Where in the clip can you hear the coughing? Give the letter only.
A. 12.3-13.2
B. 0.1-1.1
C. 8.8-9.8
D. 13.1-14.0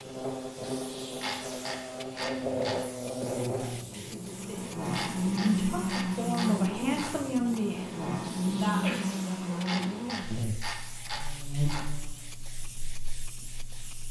C.